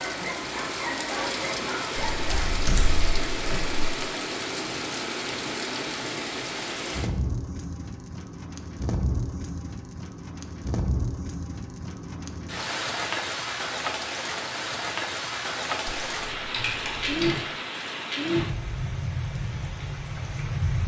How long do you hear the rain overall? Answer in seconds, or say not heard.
21 s.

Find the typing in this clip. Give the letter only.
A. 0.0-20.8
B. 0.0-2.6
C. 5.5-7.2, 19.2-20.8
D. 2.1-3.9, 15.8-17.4
D.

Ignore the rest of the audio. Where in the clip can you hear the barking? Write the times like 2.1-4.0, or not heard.
0.0-2.6.